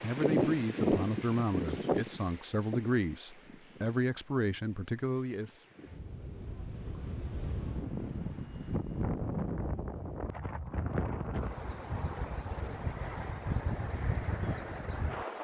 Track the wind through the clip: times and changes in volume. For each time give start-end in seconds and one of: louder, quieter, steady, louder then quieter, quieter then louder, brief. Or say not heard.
0.0-15.3 quieter then louder.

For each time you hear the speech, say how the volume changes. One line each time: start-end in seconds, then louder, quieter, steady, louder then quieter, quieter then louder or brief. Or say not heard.
0.0-5.5 steady.